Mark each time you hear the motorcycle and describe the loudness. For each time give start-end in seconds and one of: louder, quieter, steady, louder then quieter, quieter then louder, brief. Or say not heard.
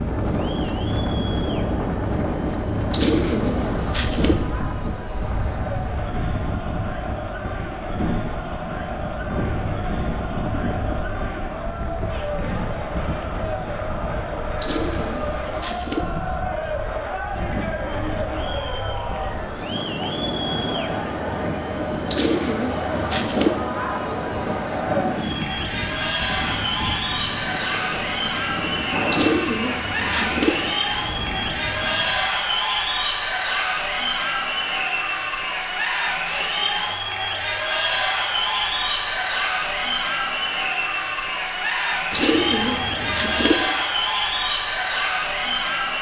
not heard.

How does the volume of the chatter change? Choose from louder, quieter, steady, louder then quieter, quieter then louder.
louder.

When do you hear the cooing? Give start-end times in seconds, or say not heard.
2.9-4.3, 14.6-16.1, 22.1-23.6, 29.1-30.6, 42.1-43.5.